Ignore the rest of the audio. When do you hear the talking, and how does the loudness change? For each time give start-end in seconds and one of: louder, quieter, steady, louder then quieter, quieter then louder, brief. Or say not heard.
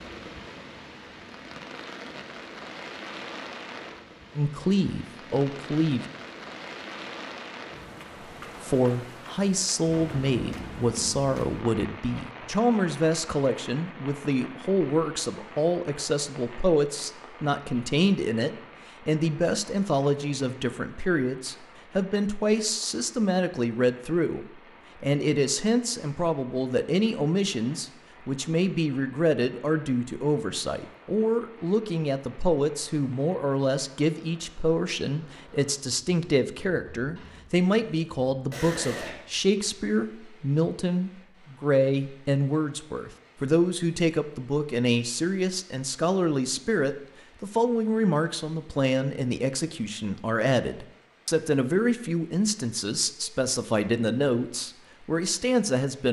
4.3-6.0 brief
8.6-56.0 steady.